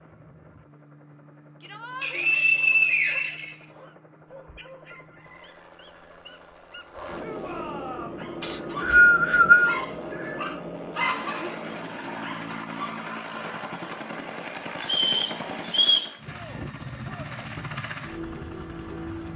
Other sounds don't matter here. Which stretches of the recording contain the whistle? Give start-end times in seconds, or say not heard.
2.0-3.5, 8.4-9.8, 14.8-16.1.